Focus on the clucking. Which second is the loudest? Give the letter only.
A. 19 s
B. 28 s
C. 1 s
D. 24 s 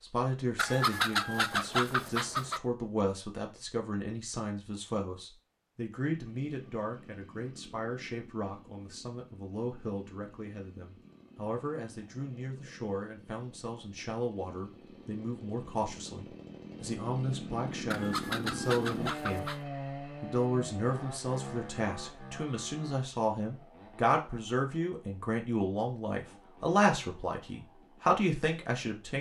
C.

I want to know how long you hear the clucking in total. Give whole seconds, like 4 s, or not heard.
4 s.